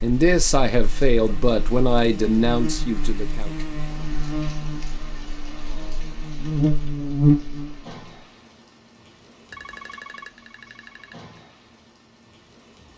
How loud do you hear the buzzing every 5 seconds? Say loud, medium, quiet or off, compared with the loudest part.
medium, loud, off.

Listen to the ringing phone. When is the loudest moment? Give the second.
10 s.